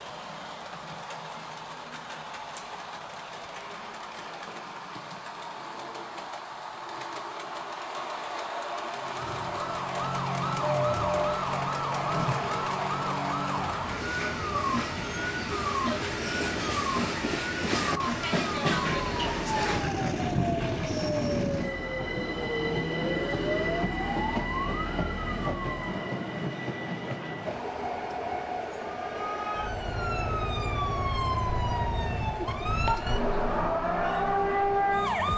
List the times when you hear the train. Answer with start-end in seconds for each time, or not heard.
0.0-35.3.